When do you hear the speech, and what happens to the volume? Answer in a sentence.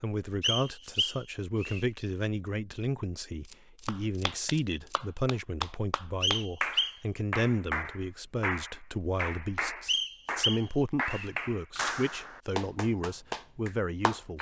The speech can be heard from 0.0 to 14.3 s, at a steady volume.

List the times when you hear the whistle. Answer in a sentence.
You can hear the whistle from 0.4 to 1.9 s, from 6.2 to 7.0 s and from 9.8 to 11.3 s.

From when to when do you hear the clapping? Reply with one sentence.
You can hear the clapping from 3.9 to 14.3 s.